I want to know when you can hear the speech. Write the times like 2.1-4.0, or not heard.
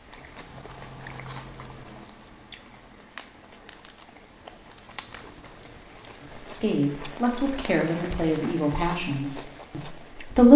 6.2-10.5.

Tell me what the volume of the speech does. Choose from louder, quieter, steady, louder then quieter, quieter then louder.
quieter.